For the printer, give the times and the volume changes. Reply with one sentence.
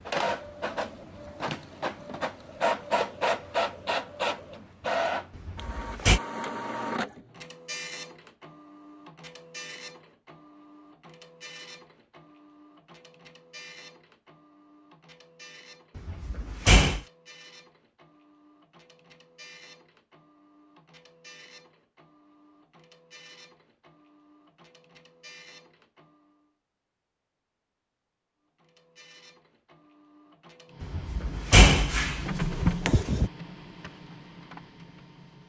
You can hear the printer from 0.1 to 26.4 s, getting quieter; and from 28.6 to 35.4 s, getting louder then quieter.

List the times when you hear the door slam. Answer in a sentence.
You can hear the door slam from 5.3 to 6.2 s, from 15.9 to 17.0 s and from 30.8 to 33.3 s.